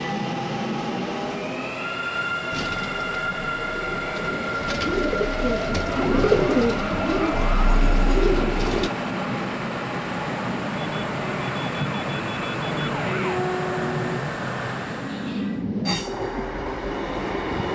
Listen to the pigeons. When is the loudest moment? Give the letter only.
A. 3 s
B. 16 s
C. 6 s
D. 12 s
C.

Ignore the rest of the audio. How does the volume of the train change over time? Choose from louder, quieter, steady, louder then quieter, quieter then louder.
steady.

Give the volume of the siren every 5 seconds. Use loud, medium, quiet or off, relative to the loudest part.
off, loud, loud, off.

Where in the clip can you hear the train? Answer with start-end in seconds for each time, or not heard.
0.0-17.7.